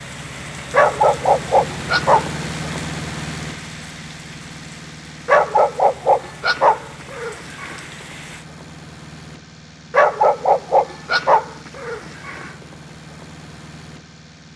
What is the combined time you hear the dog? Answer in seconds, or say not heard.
7 s.